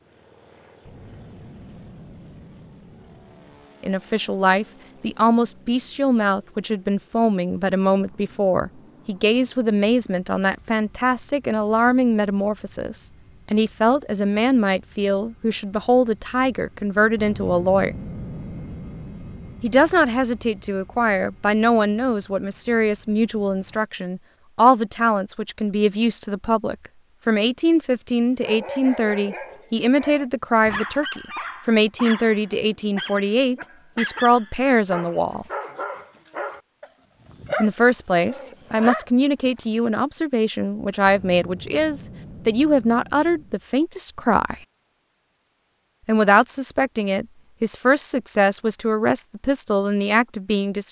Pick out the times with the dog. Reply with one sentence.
You can hear the dog from 28.4 to 39.7 s.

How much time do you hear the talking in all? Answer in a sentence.
You can hear the talking for 42 seconds altogether.